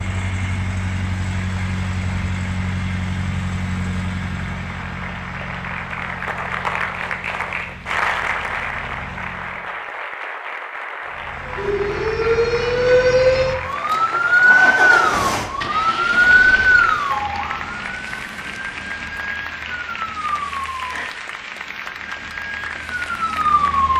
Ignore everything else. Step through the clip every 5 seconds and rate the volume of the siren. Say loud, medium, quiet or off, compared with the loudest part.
off, off, loud, loud, medium.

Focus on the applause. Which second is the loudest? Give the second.
8 s.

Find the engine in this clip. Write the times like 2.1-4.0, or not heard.
0.0-9.7, 11.1-17.1.